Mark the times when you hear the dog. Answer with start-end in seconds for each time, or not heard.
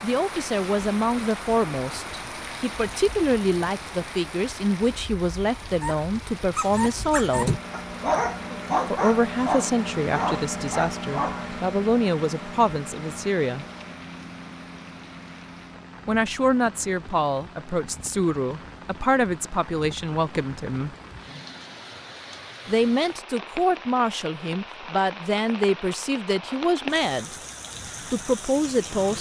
5.7-11.6.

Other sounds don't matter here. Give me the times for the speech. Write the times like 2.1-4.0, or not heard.
0.0-7.5, 8.8-13.7, 16.1-20.9, 22.6-27.4, 28.1-29.1.